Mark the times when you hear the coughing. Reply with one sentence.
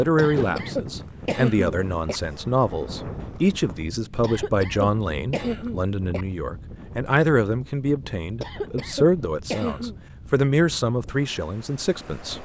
You can hear the coughing from 0.1 to 2.2 s, from 4.2 to 6.2 s and from 8.4 to 9.9 s.